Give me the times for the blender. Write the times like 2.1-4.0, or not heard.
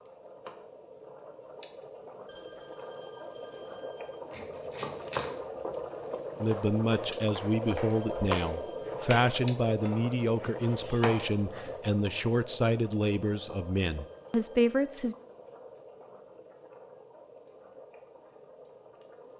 not heard.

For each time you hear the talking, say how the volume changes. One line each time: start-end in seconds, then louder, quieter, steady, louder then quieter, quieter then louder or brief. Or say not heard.
6.4-15.2 steady.